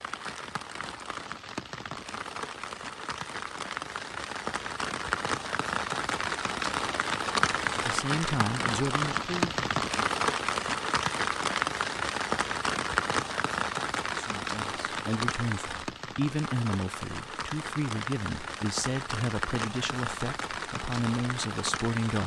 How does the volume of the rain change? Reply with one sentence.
The loudness of the rain goes up, then down.